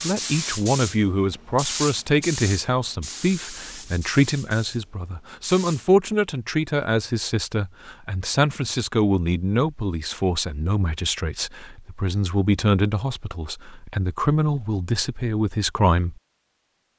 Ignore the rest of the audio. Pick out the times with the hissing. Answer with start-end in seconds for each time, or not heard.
0.0-5.8.